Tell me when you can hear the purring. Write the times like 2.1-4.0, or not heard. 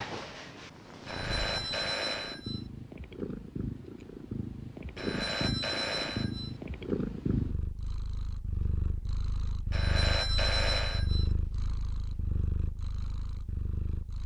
0.0-14.2.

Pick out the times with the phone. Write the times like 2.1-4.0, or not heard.
1.1-2.6, 5.0-6.5, 9.7-11.3.